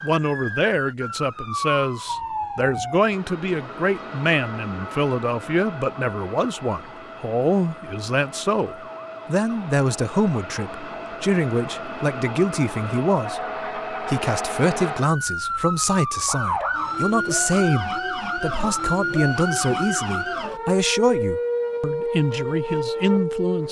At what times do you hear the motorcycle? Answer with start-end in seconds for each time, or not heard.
not heard.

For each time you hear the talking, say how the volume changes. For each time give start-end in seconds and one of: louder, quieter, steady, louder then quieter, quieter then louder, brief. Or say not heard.
0.0-23.6 steady.